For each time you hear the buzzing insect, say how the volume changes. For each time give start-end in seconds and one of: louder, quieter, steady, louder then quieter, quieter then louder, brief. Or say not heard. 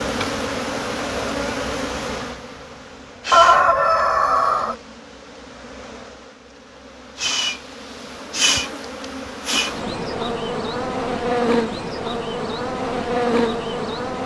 0.0-14.2 quieter then louder.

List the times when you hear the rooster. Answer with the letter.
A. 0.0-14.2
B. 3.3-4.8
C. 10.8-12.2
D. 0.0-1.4
B.